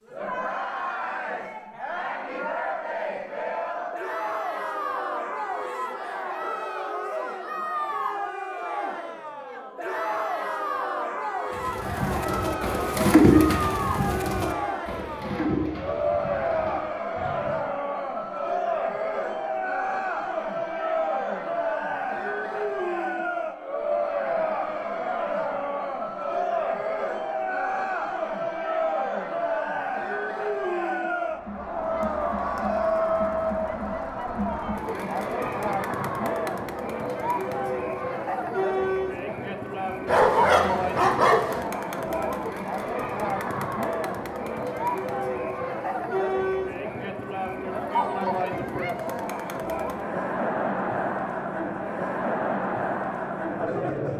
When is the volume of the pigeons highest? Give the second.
13 s.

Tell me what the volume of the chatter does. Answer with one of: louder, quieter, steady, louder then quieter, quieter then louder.
steady.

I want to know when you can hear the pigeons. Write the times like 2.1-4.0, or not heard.
11.6-17.6.